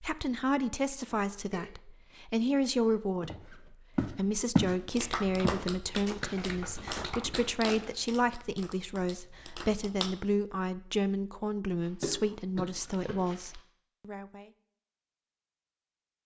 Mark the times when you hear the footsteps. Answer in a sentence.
The footsteps can be heard from 3.2 to 4.8 s and from 5.4 to 8.0 s.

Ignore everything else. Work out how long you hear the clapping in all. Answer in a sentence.
You can hear the clapping for 5 seconds altogether.